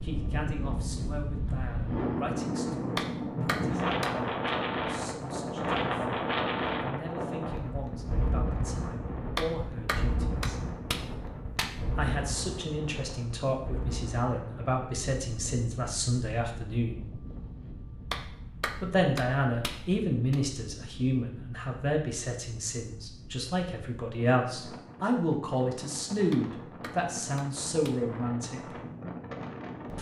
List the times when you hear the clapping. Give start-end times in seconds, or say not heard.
3.0-4.1, 9.3-12.0, 18.1-20.4, 26.3-28.1.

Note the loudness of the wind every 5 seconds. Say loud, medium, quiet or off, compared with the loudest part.
loud, loud, medium, quiet, quiet, medium.